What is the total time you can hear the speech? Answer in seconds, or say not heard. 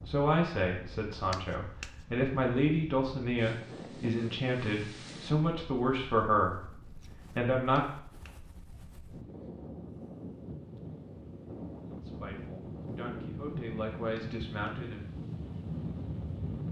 10 s.